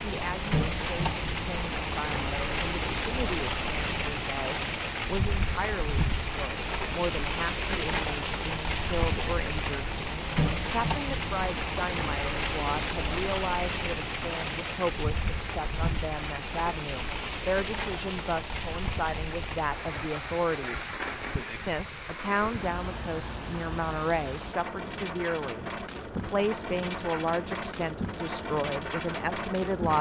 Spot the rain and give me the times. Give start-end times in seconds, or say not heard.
0.0-29.9.